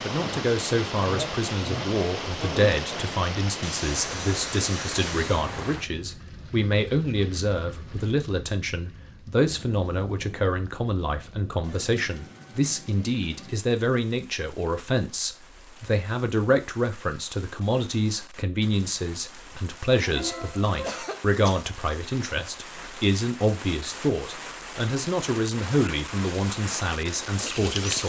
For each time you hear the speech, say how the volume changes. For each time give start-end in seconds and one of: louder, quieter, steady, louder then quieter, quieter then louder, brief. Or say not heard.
0.0-28.0 steady.